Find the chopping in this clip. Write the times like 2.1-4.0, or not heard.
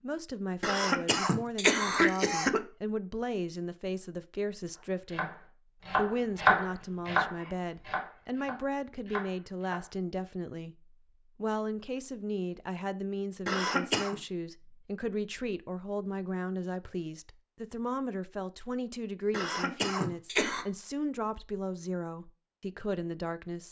4.8-9.9.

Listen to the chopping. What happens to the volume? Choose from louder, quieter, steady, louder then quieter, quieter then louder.
louder then quieter.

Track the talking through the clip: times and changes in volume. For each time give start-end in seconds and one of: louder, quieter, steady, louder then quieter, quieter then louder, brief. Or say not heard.
0.0-23.6 steady.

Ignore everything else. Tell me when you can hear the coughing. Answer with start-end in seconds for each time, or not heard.
0.6-2.6, 13.4-14.2, 19.3-20.6.